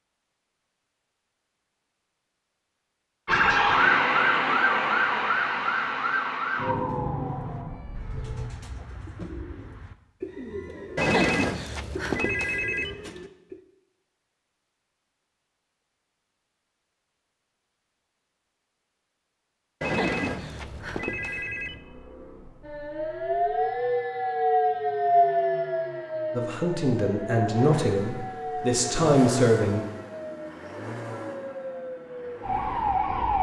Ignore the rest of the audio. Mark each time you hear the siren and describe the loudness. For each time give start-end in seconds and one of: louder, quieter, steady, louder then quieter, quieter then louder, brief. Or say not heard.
3.2-8.5 quieter
22.6-33.3 quieter then louder.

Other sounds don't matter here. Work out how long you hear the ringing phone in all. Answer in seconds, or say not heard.
4 s.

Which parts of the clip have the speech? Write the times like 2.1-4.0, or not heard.
26.3-29.8.